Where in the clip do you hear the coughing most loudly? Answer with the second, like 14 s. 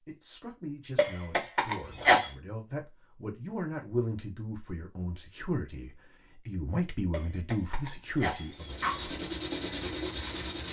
2 s.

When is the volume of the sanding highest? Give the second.
10 s.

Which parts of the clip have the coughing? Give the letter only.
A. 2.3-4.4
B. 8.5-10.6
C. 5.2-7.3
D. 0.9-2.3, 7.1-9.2
D.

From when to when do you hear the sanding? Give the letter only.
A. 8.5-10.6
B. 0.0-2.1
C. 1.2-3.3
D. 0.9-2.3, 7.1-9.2
A.